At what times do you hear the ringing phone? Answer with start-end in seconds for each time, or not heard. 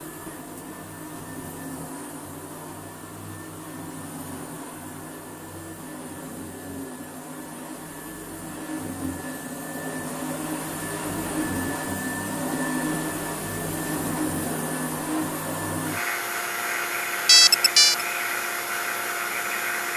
17.2-18.1.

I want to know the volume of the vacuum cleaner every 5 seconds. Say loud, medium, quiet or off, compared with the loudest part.
medium, medium, loud, loud.